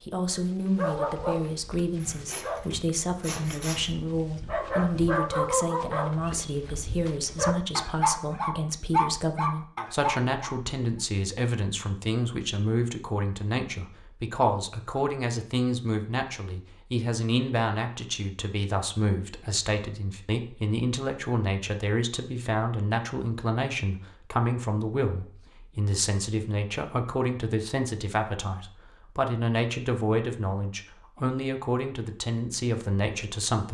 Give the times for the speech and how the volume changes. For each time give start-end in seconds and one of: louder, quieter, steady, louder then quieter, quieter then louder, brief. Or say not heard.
0.0-33.6 steady.